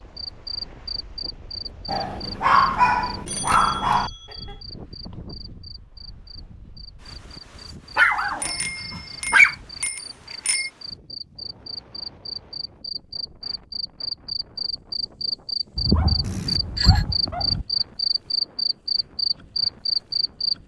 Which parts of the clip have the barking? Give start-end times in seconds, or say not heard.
1.9-4.1, 8.0-9.6, 15.8-17.6.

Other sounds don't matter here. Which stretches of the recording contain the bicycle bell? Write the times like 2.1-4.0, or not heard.
3.2-4.5, 8.4-10.7, 16.2-17.1.